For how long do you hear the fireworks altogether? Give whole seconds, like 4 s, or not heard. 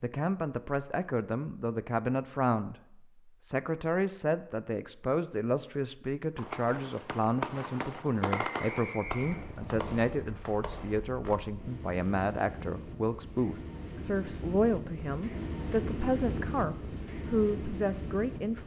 5 s.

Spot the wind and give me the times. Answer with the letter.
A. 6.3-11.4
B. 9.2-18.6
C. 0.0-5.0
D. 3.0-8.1
B.